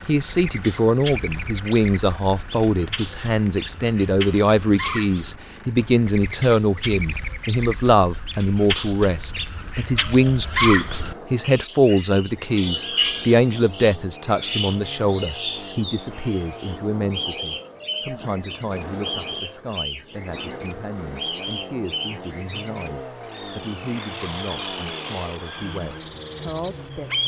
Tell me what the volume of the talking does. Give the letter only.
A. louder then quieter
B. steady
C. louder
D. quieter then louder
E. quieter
E.